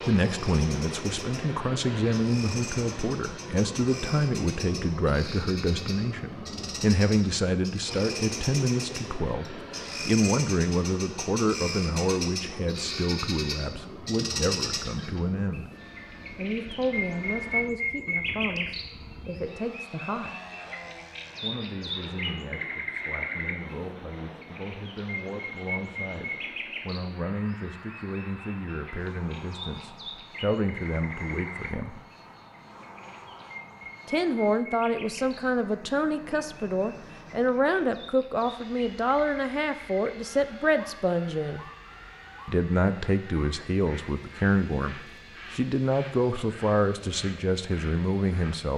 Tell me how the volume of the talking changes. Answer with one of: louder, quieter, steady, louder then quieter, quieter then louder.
quieter then louder.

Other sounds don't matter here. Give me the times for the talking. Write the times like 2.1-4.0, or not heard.
0.1-15.7, 16.4-20.4, 21.4-32.0, 34.0-41.6, 42.5-48.7.